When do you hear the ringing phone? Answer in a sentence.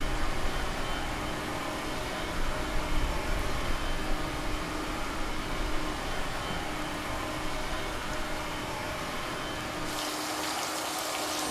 The ringing phone can't be heard in this clip.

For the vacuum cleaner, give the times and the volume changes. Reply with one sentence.
You can hear the vacuum cleaner from 0.0 to 11.4 s, at a steady volume.